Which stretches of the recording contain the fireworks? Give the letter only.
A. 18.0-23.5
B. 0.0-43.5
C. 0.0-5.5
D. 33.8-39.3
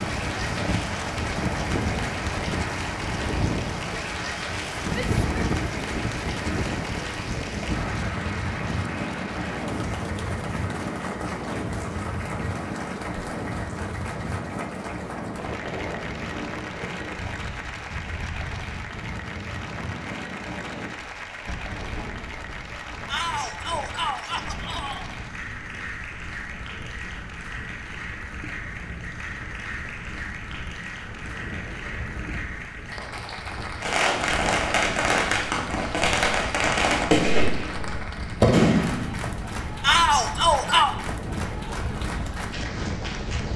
D.